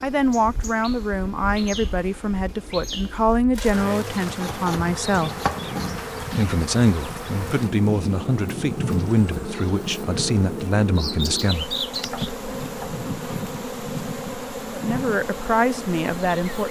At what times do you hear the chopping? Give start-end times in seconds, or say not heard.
4.3-6.0, 11.9-13.0.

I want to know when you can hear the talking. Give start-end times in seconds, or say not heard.
0.0-5.3, 6.3-11.8, 14.7-16.6.